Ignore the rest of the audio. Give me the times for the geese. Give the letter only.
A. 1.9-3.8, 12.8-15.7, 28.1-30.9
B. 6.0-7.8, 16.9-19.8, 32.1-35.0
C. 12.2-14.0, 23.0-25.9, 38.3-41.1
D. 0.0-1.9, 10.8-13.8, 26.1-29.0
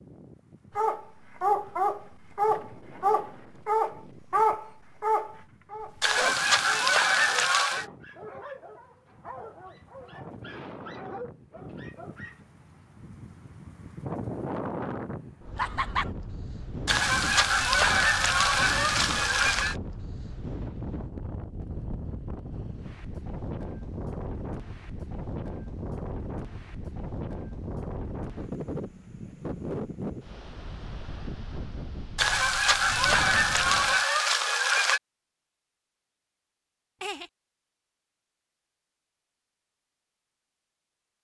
B.